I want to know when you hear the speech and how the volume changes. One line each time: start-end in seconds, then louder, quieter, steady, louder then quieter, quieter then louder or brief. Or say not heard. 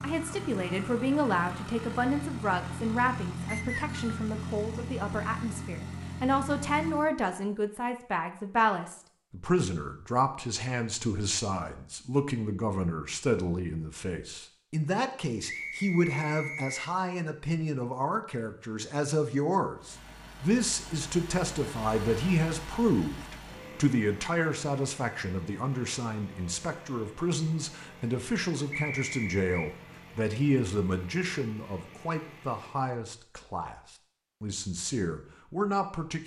0.0-33.8 steady
34.4-36.2 brief.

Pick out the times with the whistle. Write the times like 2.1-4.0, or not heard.
3.5-4.2, 15.4-16.9, 28.7-29.4.